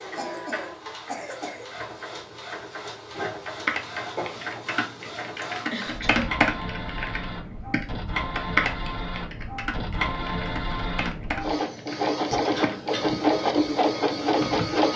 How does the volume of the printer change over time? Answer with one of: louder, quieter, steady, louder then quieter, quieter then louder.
louder.